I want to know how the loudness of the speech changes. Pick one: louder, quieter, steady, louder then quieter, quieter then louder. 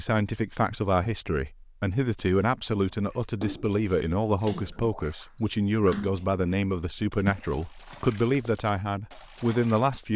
steady.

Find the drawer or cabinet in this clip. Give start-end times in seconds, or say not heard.
not heard.